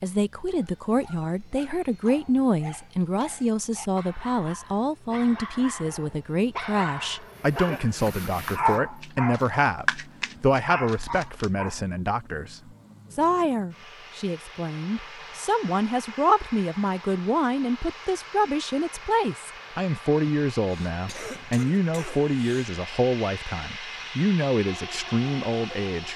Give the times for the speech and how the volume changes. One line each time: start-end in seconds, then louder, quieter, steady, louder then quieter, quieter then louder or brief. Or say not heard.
0.0-26.1 steady.